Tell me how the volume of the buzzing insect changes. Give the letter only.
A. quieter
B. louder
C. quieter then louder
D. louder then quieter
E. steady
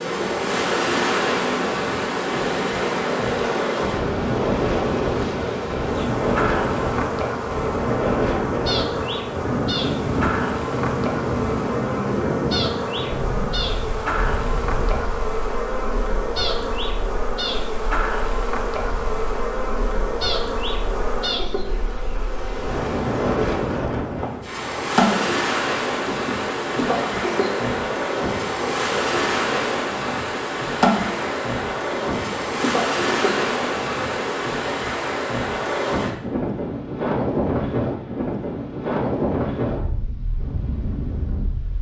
E.